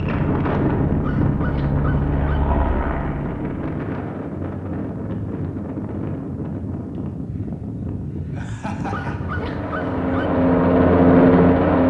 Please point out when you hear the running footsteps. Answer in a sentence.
You can't hear the running footsteps here.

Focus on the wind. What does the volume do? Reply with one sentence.
The volume of the wind goes down.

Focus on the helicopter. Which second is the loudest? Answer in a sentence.
The loudest moment of the helicopter is at 11 seconds.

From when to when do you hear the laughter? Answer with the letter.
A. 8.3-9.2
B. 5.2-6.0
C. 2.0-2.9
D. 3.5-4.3
A.